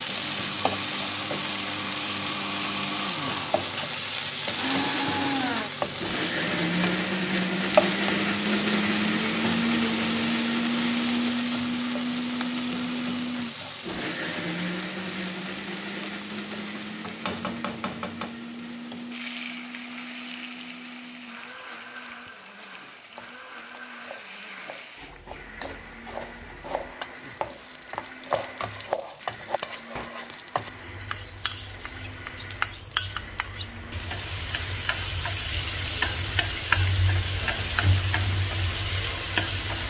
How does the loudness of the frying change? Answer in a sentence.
The loudness of the frying goes down, then up.